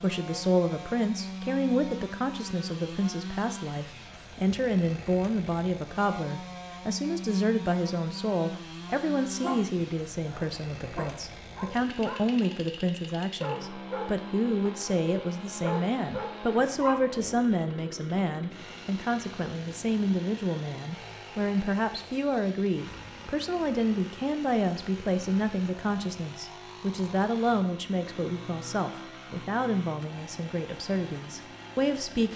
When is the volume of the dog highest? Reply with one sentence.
The loudest moment of the dog is at 17 seconds.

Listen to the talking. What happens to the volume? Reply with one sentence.
The volume of the talking stays about the same.